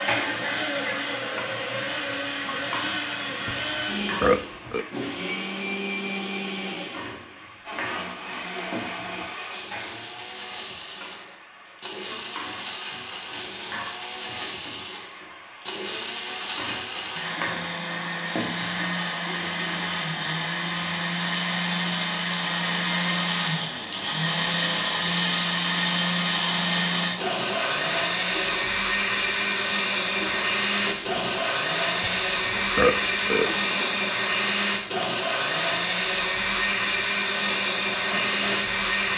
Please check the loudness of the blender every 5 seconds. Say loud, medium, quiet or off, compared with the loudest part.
medium, medium, medium, medium, loud, loud, loud, loud.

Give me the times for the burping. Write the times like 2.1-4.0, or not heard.
3.5-4.8, 32.0-33.5.